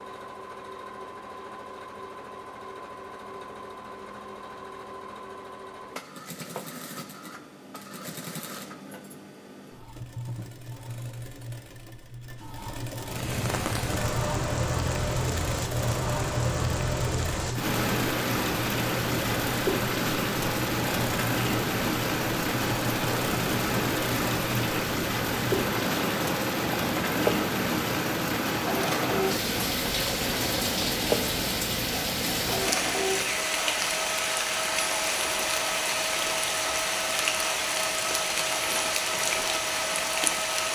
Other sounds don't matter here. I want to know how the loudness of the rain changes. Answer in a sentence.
The loudness of the rain stays about the same.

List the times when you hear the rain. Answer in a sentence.
The rain can be heard from 13.1 to 40.6 s.